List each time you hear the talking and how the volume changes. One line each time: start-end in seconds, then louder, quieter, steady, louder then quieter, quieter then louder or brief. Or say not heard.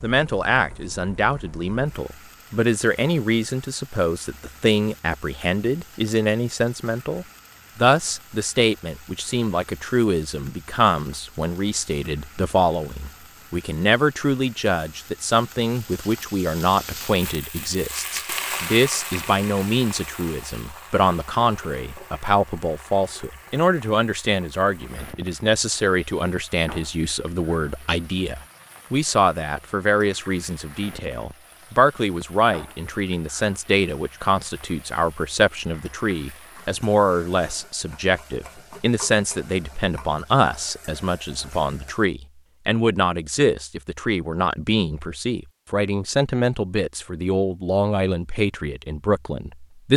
0.0-49.9 steady.